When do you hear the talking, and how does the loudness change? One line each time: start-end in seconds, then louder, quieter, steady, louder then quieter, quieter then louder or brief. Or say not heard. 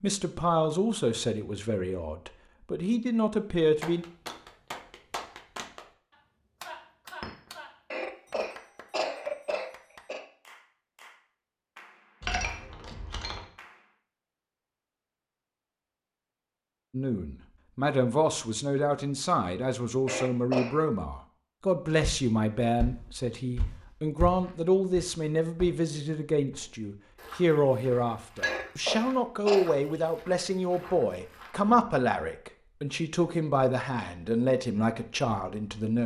0.0-4.0 quieter then louder
16.9-36.0 steady.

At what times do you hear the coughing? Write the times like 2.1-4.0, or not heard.
7.9-10.2, 20.1-20.8, 28.4-29.8.